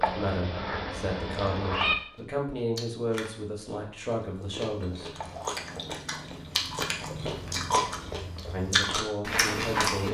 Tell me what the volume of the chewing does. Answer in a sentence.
The volume of the chewing goes up.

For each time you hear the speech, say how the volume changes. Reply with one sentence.
The speech can be heard from 0.0 to 5.1 s, at a steady volume; and briefly from 8.5 to 10.0 s.